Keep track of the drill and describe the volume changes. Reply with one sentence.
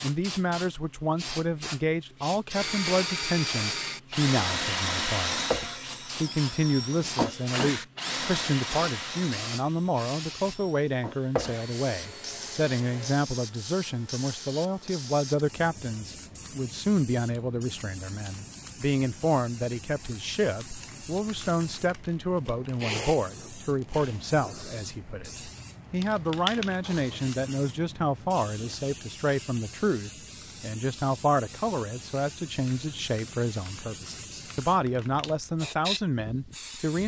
The loudness of the drill goes down.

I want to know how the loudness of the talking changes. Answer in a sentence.
The loudness of the talking stays about the same.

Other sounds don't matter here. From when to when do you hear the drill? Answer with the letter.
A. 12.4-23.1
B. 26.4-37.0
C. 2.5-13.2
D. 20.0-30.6
C.